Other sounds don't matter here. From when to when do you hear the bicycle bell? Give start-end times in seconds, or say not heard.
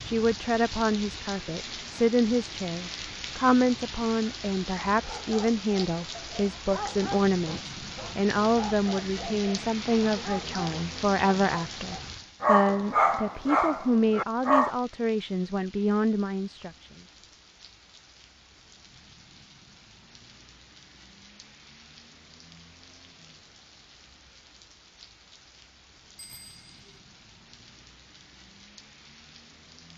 26.1-27.0.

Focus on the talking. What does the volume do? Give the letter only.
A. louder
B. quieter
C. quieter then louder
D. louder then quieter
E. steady
E.